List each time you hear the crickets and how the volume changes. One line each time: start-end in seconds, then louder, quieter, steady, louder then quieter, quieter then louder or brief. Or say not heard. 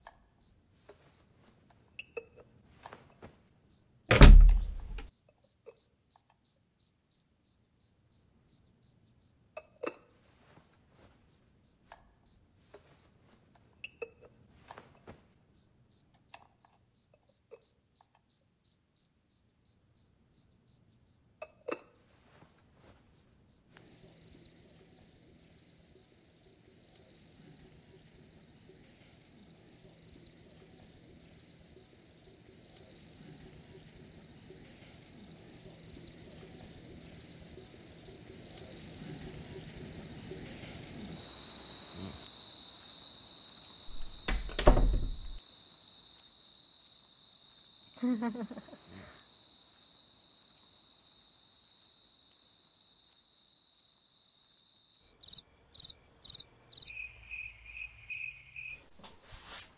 0.0-59.7 louder then quieter.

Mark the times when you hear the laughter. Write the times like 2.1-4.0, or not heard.
47.9-49.1.